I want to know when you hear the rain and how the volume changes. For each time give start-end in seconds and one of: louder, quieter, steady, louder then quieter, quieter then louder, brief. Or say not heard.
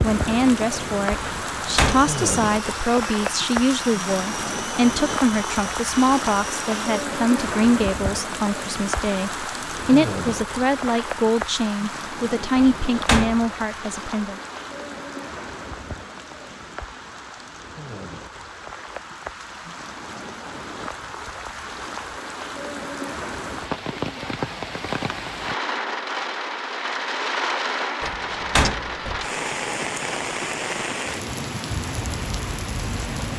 0.0-33.3 quieter then louder.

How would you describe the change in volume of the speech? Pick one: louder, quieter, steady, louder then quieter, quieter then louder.
steady.